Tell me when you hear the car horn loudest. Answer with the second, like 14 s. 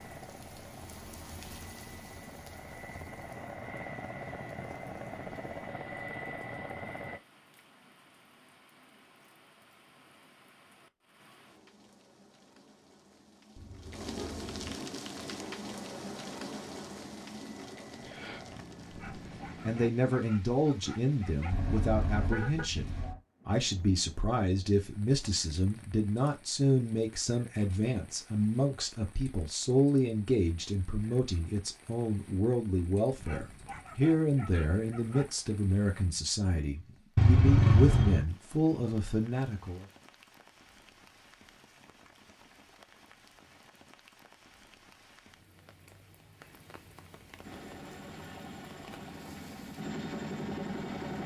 38 s.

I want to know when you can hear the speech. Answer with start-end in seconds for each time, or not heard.
19.6-39.9.